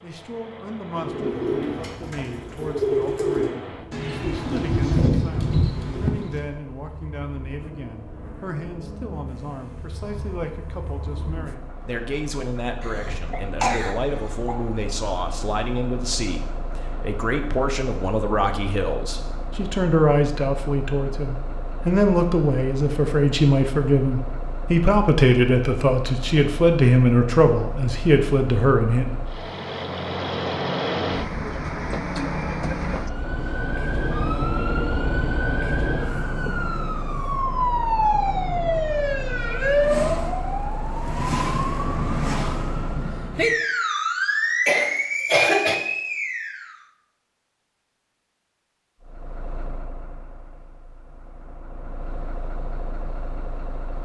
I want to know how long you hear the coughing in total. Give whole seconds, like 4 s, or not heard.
3 s.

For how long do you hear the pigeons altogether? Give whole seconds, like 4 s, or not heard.
5 s.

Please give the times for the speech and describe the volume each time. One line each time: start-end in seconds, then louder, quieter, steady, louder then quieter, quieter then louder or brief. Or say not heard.
0.0-29.1 louder.